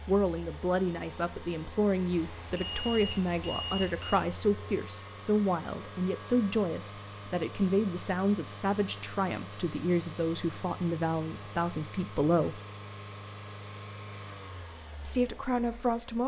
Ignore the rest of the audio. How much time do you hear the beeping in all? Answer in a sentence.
You can hear the beeping for 2 seconds altogether.